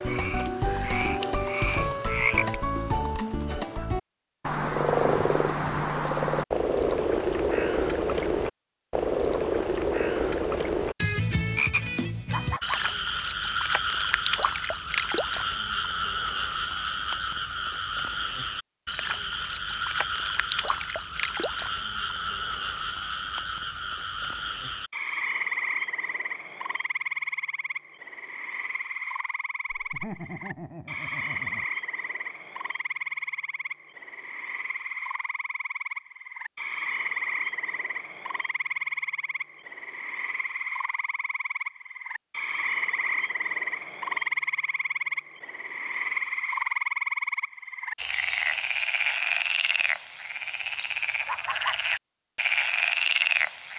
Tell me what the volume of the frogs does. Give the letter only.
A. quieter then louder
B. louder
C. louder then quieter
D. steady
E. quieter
A.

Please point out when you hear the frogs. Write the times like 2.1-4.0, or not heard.
0.0-53.7.